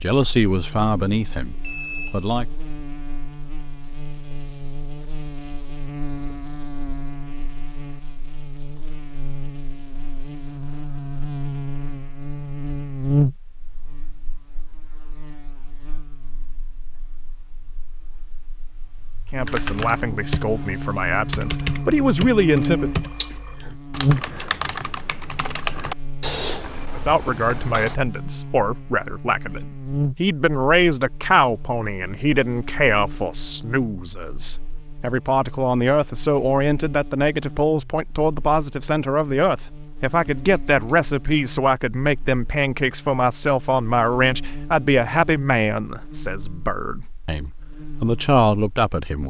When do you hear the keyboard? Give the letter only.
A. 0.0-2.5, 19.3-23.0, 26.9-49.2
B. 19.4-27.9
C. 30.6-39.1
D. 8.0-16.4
B.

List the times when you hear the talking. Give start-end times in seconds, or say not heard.
0.0-2.5, 19.3-23.0, 26.9-49.2.